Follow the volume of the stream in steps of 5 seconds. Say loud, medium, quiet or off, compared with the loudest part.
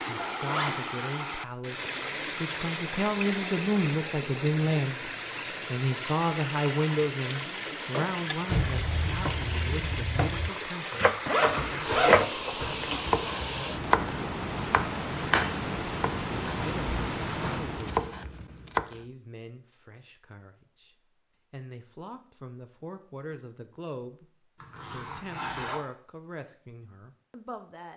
loud, loud, loud, loud, off, off.